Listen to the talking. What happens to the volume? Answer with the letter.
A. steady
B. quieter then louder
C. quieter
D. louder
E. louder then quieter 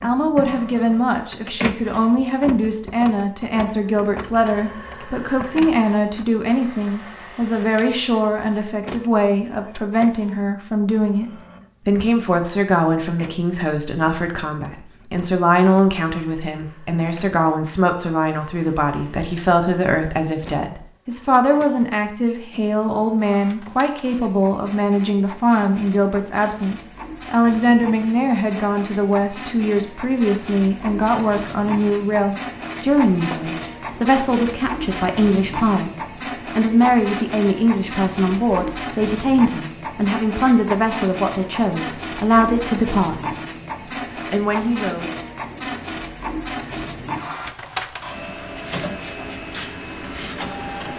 A.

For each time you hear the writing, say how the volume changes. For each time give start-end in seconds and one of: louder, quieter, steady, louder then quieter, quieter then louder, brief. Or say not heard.
not heard.